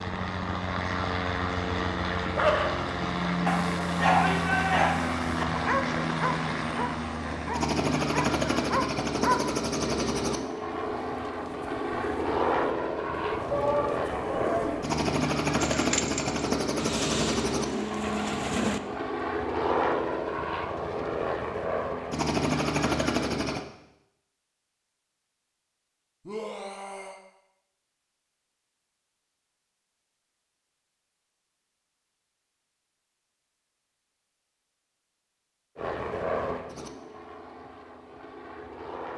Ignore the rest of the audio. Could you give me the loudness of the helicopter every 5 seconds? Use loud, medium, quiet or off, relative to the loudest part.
loud, loud, loud, loud, loud, off, off, medium.